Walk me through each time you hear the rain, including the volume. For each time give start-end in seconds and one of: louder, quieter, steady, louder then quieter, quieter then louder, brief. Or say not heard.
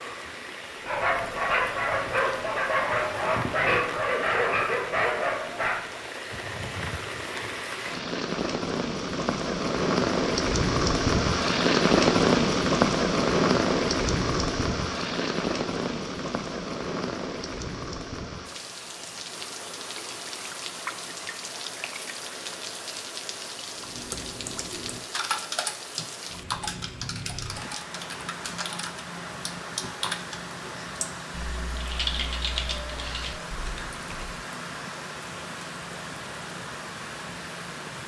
0.0-38.0 louder then quieter.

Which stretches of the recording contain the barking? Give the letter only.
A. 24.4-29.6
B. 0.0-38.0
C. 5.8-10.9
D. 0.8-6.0
D.